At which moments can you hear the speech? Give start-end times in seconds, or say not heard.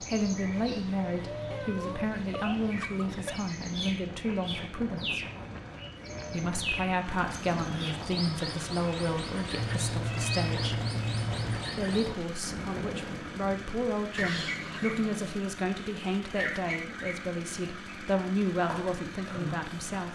0.0-5.2, 6.3-10.8, 11.8-20.1.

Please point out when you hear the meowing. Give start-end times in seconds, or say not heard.
1.5-3.4, 9.6-11.6, 14.2-15.4.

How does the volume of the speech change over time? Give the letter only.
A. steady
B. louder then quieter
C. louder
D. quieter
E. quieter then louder
A.